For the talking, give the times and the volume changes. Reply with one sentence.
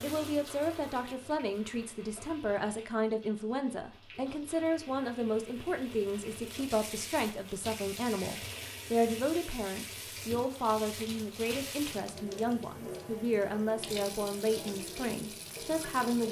The talking can be heard from 0.0 to 16.2 s, at a steady volume.